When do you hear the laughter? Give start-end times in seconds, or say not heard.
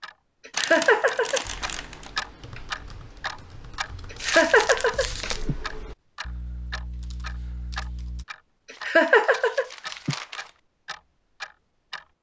0.5-1.4, 4.1-5.5, 8.8-10.2.